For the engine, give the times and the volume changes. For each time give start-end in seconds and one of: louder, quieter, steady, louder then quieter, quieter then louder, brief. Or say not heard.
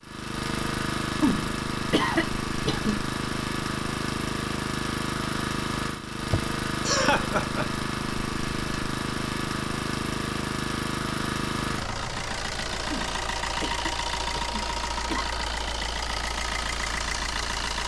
0.0-17.8 steady.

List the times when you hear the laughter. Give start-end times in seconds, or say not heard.
1.2-3.0, 6.3-7.8, 12.9-15.2.